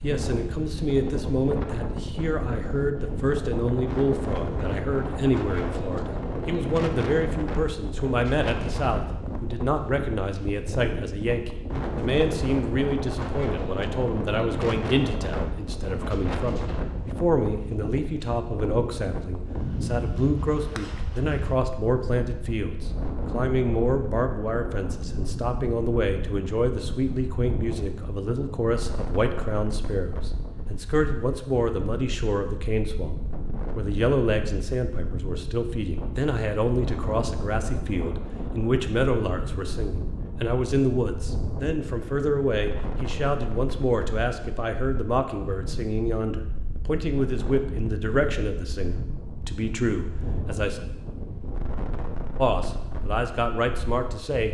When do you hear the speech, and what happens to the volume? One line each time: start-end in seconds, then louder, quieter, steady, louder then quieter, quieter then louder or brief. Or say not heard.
0.0-50.8 steady
52.4-54.4 brief.